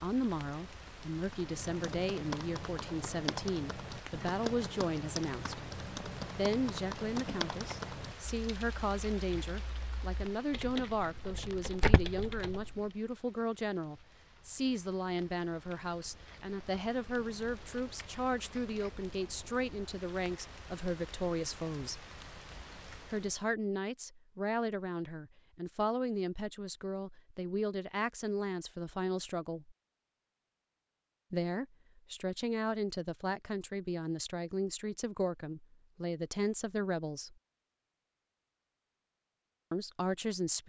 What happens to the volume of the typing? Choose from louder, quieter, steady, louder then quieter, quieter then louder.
quieter then louder.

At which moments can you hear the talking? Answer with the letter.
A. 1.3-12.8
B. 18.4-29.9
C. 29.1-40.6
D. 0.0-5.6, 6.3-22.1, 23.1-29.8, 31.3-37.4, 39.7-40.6
D.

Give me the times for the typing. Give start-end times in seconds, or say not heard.
1.3-12.8.